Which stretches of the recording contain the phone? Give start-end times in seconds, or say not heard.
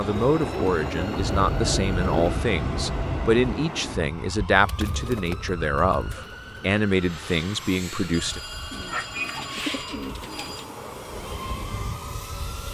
1.1-3.4, 8.1-10.7.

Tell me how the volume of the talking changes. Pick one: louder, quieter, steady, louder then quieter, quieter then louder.
steady.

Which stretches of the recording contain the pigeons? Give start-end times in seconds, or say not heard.
0.3-2.4, 4.6-6.8, 8.7-10.8.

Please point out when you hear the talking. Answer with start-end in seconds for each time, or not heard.
0.0-8.4.